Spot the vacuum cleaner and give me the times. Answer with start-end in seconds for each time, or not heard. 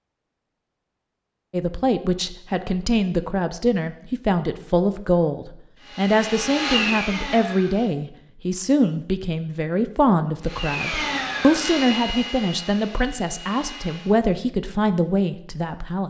5.8-7.9, 10.4-14.2.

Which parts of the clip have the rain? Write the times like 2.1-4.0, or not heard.
not heard.